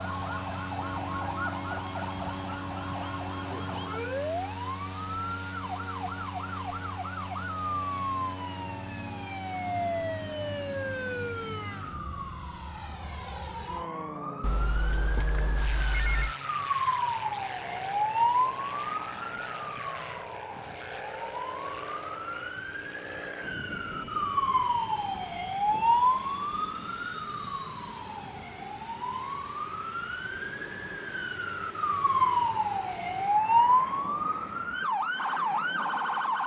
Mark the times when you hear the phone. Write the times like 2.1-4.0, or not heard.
14.4-16.4.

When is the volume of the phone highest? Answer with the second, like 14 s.
16 s.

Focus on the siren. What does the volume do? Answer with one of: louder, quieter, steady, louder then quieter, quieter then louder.
louder.